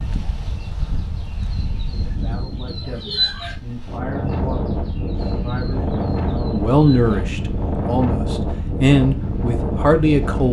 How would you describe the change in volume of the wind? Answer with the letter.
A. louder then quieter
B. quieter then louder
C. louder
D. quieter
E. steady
C.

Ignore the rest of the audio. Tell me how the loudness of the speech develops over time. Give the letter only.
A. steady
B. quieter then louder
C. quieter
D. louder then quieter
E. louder
E.